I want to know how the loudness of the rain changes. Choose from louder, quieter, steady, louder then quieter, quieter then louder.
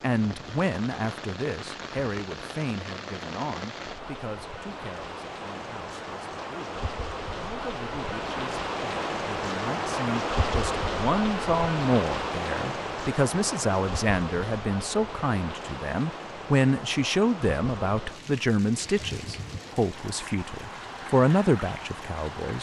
louder then quieter.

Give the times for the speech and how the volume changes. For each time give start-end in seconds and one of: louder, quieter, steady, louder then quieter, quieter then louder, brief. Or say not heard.
0.0-22.5 quieter then louder.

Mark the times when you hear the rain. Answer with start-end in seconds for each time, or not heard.
0.0-22.5.